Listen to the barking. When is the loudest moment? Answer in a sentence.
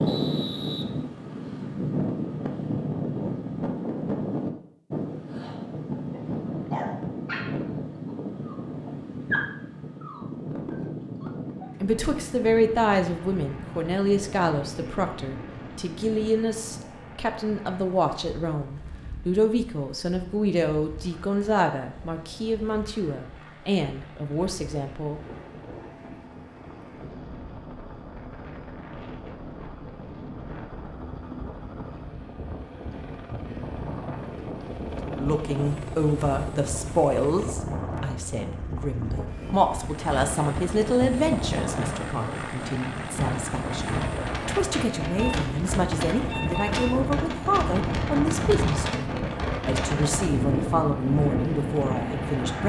The loudest moment of the barking is at 9 seconds.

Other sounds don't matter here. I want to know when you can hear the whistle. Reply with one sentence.
You can hear the whistle from 0.1 to 1.4 s.